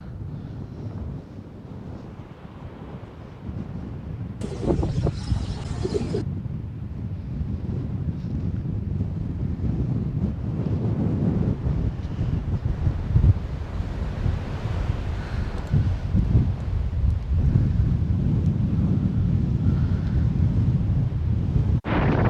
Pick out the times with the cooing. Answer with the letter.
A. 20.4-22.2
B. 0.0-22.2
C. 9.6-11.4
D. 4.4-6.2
D.